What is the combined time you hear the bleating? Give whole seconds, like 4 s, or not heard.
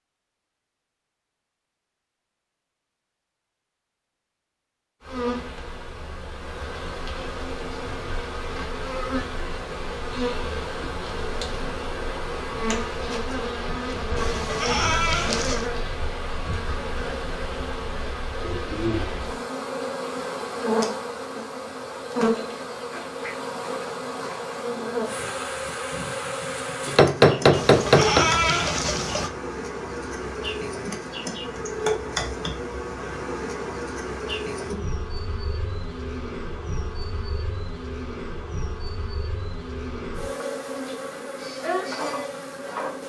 3 s.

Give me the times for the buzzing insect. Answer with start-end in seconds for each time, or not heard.
5.0-43.0.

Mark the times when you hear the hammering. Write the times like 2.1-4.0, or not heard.
26.9-28.3.